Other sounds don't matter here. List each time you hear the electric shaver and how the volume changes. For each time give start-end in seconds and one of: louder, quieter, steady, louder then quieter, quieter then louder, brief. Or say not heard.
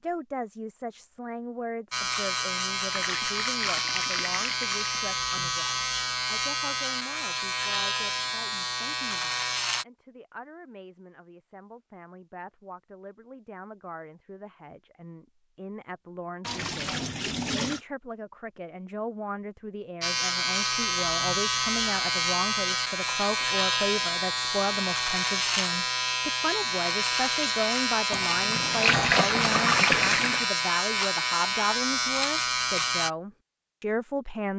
1.9-9.8 steady
20.0-33.1 steady.